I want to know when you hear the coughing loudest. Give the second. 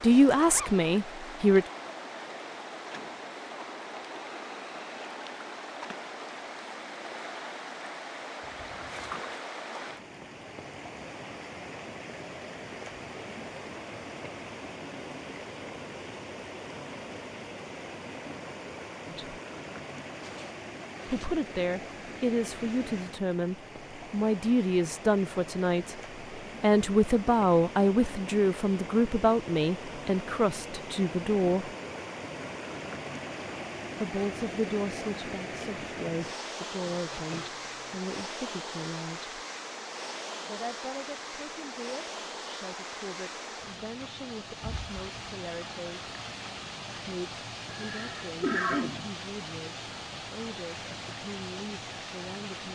49 s.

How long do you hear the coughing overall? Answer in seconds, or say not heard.
2 s.